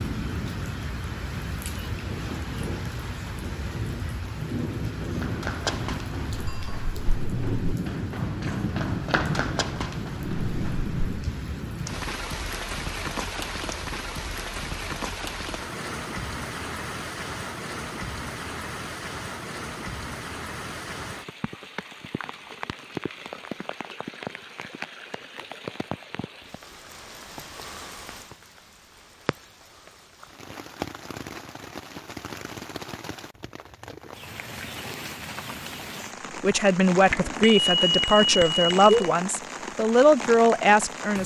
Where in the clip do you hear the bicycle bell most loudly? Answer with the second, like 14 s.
39 s.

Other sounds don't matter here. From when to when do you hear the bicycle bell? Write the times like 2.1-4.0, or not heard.
6.5-6.9, 37.1-39.1.